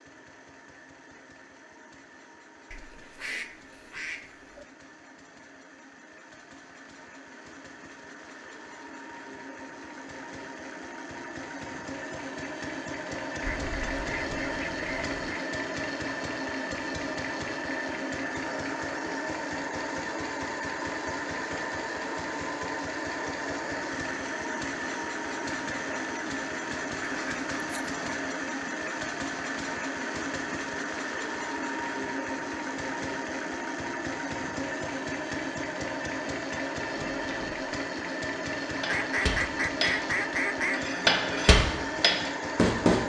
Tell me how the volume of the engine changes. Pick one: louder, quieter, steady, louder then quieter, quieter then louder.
louder.